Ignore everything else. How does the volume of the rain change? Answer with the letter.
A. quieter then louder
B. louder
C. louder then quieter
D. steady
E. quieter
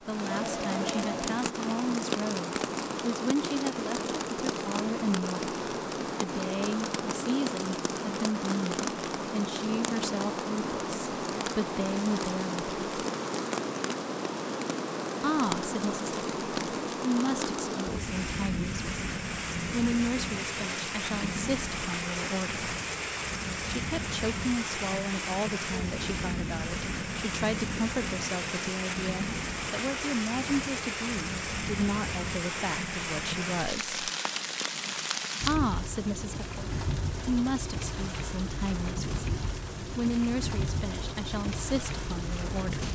D.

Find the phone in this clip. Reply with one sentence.
You can hear the phone from 0.3 to 1.2 s.